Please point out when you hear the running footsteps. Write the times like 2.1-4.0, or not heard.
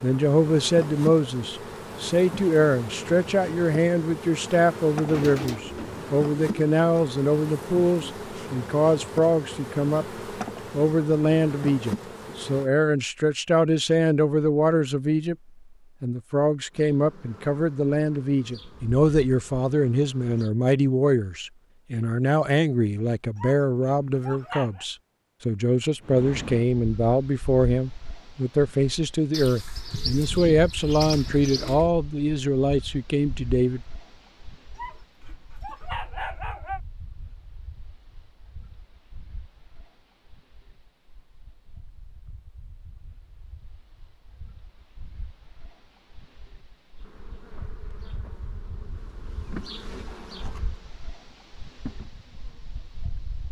not heard.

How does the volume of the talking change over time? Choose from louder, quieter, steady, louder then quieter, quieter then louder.
steady.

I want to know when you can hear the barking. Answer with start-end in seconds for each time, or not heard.
23.4-24.9, 34.8-36.8.